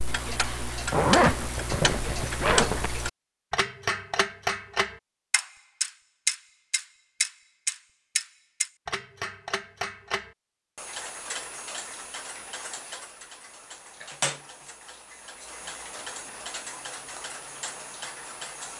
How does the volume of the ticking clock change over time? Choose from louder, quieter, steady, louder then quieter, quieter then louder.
quieter.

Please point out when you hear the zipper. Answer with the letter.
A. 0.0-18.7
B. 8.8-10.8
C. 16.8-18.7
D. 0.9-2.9
D.